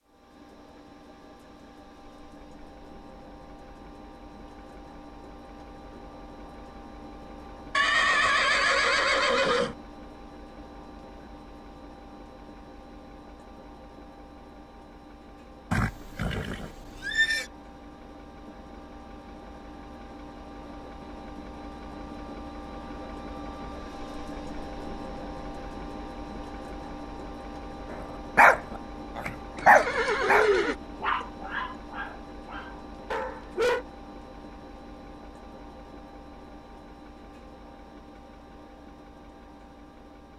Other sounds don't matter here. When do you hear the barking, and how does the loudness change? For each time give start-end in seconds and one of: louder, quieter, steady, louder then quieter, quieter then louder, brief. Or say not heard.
28.4-33.9 quieter.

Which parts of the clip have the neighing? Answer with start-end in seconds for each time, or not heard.
7.7-9.8, 15.7-17.4, 29.6-30.8.